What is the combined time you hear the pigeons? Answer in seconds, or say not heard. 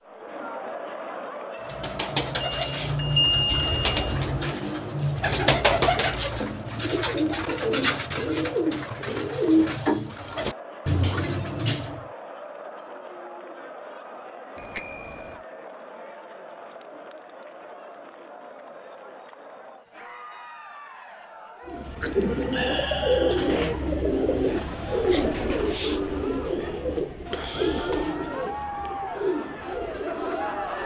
20 s.